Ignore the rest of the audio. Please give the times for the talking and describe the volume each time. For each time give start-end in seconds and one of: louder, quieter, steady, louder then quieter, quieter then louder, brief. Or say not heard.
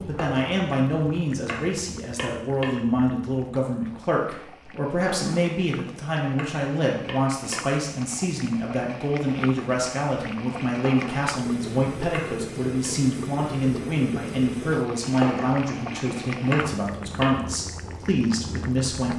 0.1-19.1 steady.